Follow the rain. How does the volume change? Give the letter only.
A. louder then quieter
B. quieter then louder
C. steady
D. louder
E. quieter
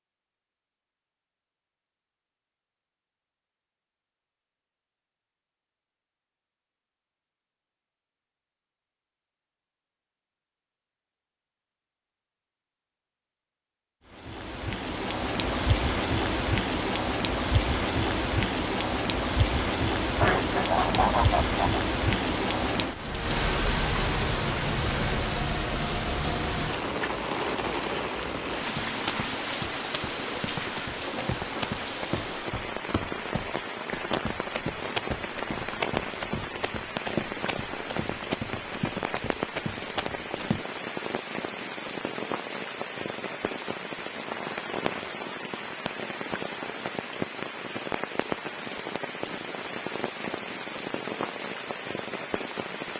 E.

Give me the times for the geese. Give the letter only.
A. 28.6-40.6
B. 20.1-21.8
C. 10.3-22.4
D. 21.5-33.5
B.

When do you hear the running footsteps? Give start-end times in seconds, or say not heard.
28.6-40.6.